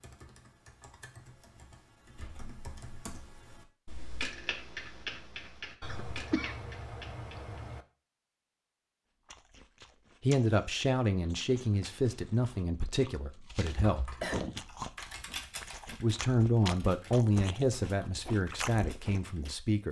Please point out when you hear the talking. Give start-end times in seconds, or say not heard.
10.2-14.2, 16.0-19.8.